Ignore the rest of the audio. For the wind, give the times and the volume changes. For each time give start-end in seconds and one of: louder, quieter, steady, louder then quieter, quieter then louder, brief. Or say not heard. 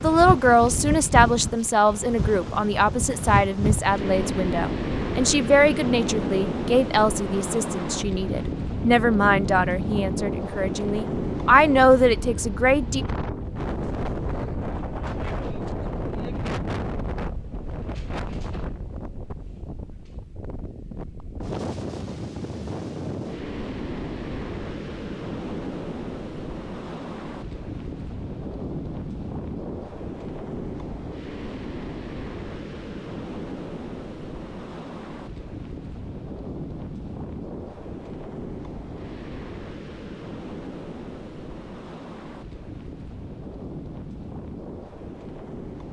0.0-45.8 quieter.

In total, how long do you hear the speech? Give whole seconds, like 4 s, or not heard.
13 s.